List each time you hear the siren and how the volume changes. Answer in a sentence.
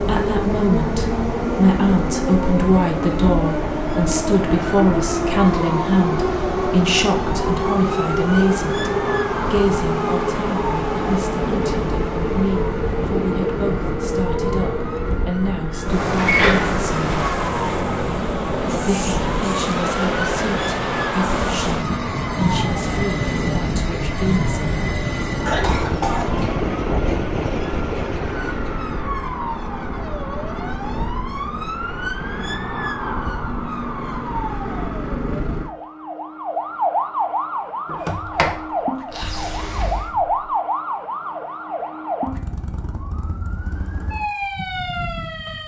The siren can be heard from 0.0 to 45.6 s, at a steady volume.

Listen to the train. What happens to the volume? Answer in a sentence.
The volume of the train stays about the same.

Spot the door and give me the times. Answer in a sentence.
You can hear the door from 16.1 to 16.8 s and from 37.9 to 40.4 s.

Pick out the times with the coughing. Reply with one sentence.
You can hear the coughing from 25.4 to 26.4 s.